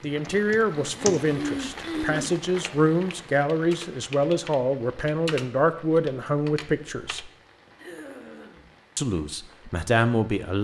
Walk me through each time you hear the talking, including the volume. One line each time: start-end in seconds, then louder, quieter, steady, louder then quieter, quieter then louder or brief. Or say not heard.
0.0-7.3 steady
8.9-10.5 brief.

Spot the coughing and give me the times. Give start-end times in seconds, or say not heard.
0.7-2.4, 7.8-8.7.